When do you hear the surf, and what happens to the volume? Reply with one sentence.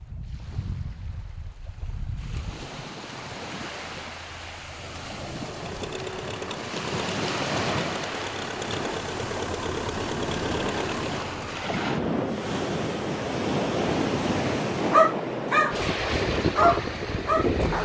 The surf can be heard from 0.0 to 17.8 s, getting louder.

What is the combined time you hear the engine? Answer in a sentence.
The engine can be heard for 6 seconds in total.